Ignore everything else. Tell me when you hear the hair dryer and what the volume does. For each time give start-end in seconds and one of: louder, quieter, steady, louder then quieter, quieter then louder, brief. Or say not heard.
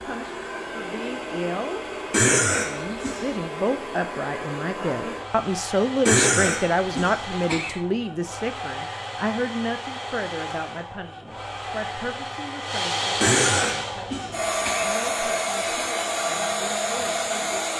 0.0-17.7 louder.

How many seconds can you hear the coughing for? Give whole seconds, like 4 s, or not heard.
5 s.